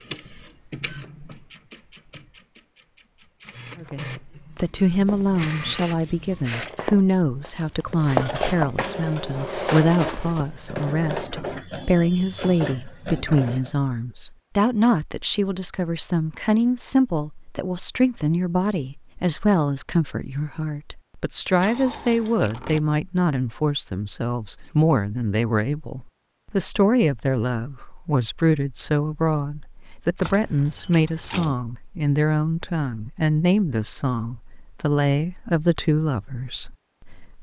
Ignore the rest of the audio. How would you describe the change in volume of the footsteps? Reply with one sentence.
The volume of the footsteps goes up, then down.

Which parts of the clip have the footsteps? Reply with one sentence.
The footsteps can be heard from 3.7 to 10.9 s.